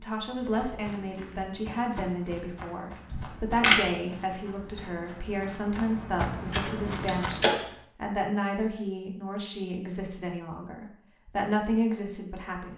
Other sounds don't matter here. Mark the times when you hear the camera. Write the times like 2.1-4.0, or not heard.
3.1-3.8, 6.5-7.7.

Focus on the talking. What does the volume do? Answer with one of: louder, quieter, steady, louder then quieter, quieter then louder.
steady.